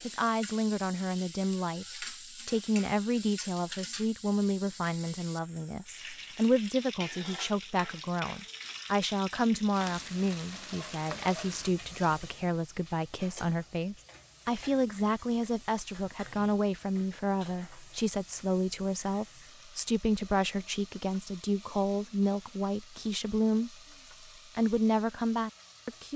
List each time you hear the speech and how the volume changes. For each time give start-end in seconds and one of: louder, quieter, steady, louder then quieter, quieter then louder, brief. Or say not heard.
0.0-23.8 steady
24.6-26.1 brief.